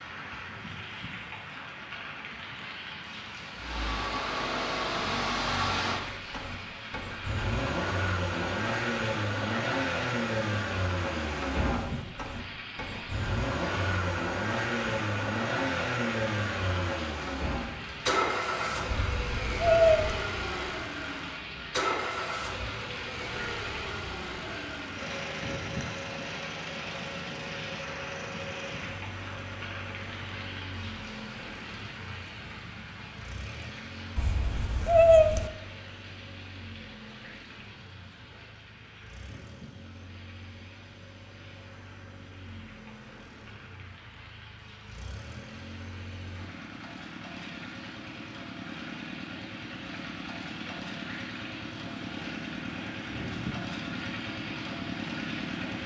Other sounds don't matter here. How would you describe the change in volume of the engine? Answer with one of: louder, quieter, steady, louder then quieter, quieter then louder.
quieter then louder.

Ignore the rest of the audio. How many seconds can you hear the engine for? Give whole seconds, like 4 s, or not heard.
52 s.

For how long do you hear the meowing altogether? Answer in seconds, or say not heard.
3 s.